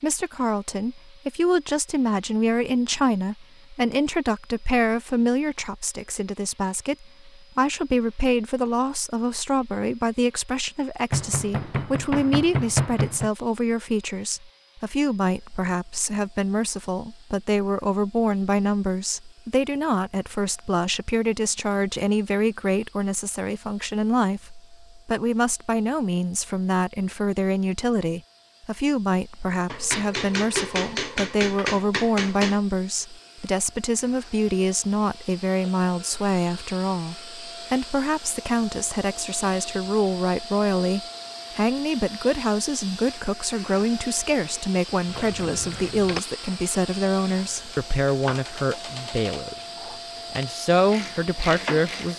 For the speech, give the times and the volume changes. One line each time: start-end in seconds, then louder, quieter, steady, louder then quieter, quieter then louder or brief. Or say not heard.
0.0-49.5 steady
50.3-52.1 brief.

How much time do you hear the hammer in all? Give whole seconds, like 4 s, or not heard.
5 s.